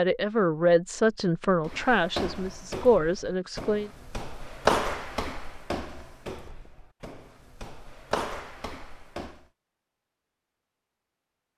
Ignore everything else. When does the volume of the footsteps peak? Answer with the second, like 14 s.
5 s.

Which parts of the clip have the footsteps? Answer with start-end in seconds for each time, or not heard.
1.6-9.4.